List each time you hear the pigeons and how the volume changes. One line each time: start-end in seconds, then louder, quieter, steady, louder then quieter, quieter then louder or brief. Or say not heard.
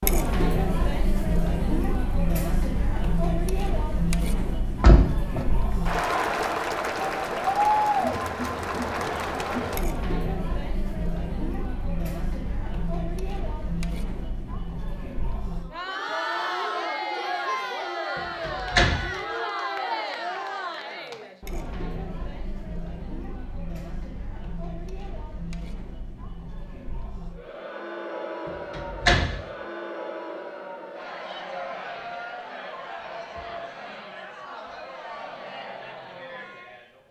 not heard.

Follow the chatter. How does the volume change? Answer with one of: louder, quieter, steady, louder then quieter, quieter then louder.
quieter.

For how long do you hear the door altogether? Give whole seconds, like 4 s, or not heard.
2 s.